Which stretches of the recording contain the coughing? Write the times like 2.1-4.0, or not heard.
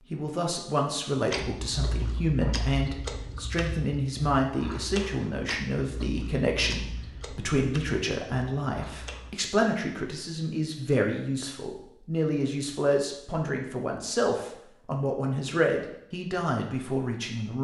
not heard.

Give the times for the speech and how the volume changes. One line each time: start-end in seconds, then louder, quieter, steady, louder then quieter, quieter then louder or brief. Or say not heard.
0.1-17.6 steady.